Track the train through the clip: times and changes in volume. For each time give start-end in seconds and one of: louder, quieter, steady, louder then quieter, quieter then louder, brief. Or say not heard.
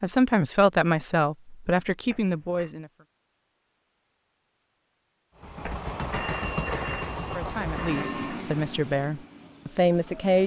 5.3-10.4 quieter.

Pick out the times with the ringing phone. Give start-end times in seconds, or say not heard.
2.0-2.8, 5.6-8.4.